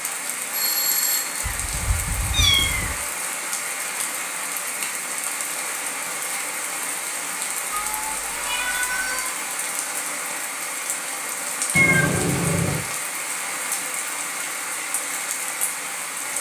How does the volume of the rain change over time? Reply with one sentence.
The volume of the rain stays about the same.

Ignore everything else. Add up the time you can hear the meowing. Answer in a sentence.
You can hear the meowing for 4 seconds altogether.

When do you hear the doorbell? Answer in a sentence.
The doorbell can be heard from 0.5 to 1.4 s.